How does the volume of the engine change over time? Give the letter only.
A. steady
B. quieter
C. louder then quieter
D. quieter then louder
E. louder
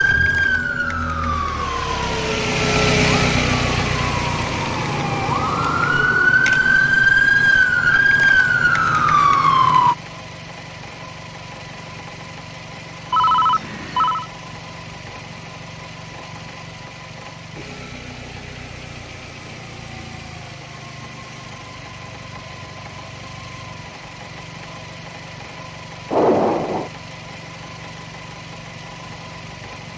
B.